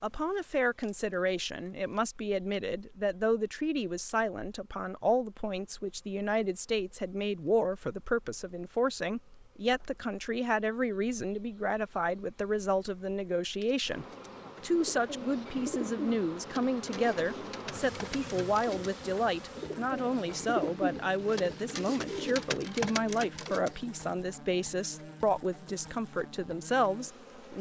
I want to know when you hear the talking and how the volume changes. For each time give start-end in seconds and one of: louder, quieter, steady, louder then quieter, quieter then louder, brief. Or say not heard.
0.0-27.5 steady.